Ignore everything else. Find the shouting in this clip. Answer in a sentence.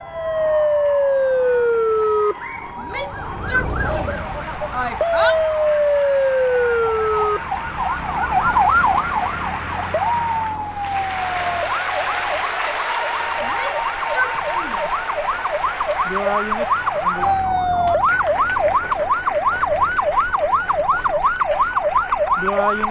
You can hear the shouting from 2.8 to 5.4 s and from 13.4 to 15.0 s.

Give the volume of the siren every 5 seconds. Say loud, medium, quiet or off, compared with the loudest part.
loud, loud, medium, loud, loud.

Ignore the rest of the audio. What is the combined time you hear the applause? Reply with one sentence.
You can hear the applause for 23 seconds altogether.